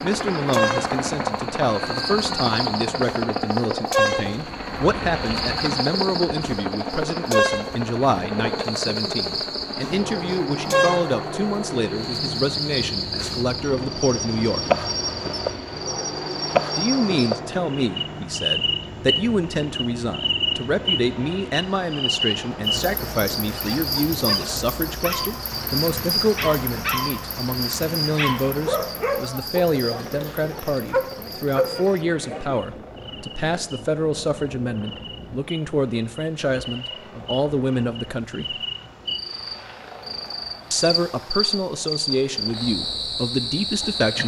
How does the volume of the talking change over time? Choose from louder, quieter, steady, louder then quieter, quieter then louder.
steady.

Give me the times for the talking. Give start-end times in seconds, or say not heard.
0.0-14.7, 16.8-38.5, 40.7-44.2.